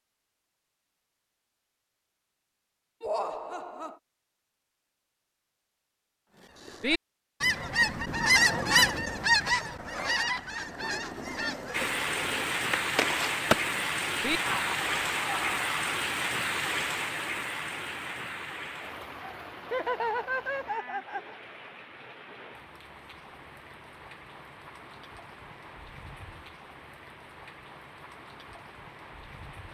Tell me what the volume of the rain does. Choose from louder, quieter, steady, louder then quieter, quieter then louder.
quieter.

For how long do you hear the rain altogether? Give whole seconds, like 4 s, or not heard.
18 s.